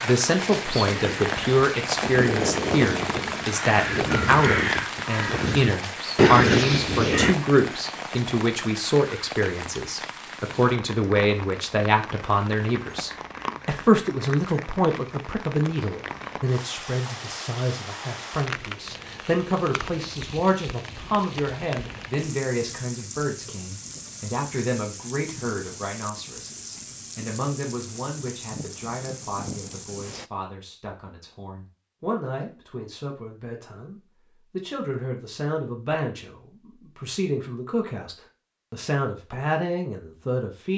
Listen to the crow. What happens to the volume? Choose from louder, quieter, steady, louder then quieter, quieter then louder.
louder.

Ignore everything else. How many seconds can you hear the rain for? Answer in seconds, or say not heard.
30 s.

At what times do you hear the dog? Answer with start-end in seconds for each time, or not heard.
not heard.